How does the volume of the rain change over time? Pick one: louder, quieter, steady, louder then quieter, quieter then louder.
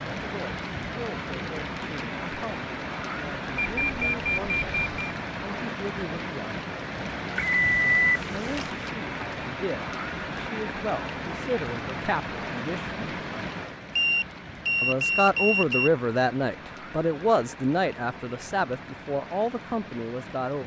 quieter.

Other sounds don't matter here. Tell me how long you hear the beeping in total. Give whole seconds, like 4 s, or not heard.
5 s.